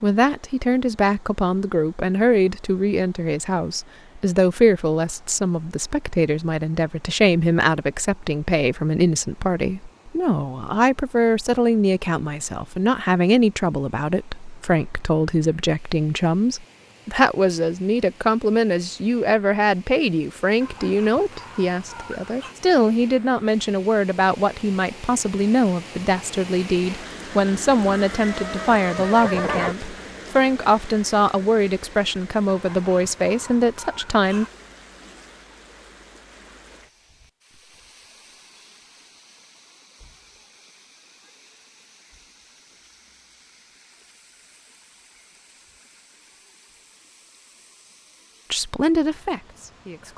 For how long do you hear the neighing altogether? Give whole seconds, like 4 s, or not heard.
2 s.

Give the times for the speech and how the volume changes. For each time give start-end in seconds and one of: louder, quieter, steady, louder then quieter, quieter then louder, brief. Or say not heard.
0.0-34.5 steady
48.5-50.1 brief.